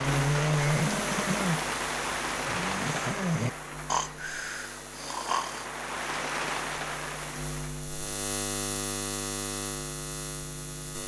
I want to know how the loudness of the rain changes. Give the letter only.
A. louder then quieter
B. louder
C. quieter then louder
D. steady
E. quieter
C.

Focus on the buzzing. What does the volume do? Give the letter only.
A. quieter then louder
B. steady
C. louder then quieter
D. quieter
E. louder
A.